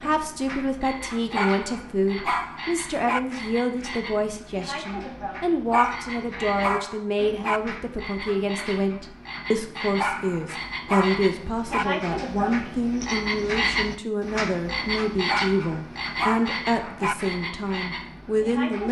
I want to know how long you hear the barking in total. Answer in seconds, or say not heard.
8 s.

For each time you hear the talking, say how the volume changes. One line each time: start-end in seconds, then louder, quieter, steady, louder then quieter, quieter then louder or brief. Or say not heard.
0.0-18.8 steady.